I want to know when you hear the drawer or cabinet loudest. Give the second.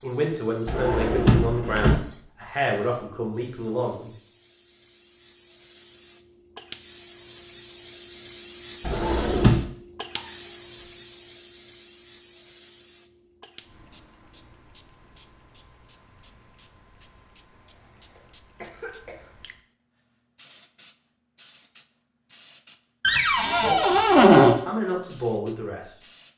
24 s.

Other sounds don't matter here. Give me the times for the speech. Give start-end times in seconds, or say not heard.
0.0-4.2, 23.4-25.9.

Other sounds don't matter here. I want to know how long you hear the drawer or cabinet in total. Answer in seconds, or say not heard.
4 s.